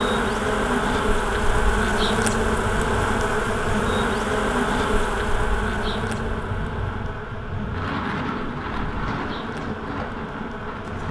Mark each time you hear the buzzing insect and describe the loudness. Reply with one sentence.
You can hear the buzzing insect from 0.0 to 11.0 s, getting quieter.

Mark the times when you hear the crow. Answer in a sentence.
You can't hear the crow here.